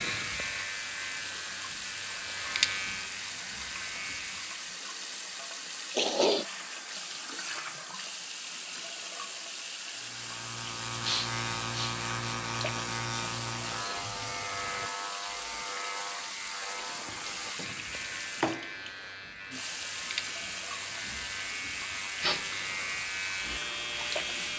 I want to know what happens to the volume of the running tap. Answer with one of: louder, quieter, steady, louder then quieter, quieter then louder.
steady.